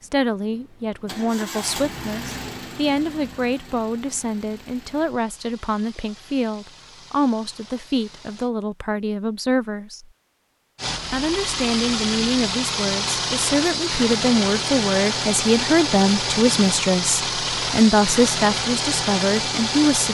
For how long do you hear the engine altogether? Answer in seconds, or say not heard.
18 s.